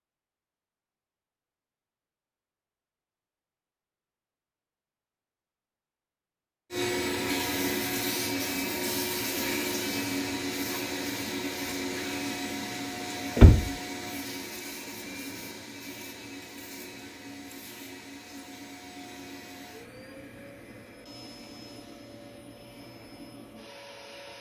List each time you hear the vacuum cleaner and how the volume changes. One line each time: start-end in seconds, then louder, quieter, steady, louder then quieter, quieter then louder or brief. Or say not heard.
6.7-24.3 quieter.